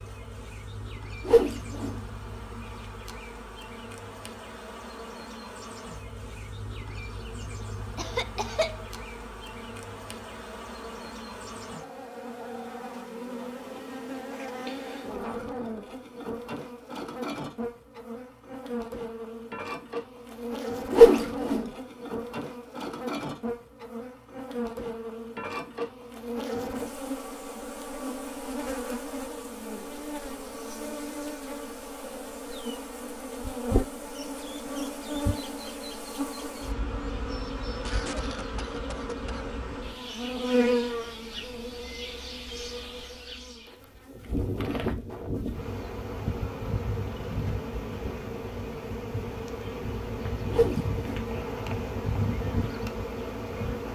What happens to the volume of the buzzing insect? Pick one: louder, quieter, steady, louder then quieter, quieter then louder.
louder.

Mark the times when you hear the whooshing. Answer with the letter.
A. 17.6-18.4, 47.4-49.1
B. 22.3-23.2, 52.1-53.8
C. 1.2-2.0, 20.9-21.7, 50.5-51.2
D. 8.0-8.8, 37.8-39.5
C.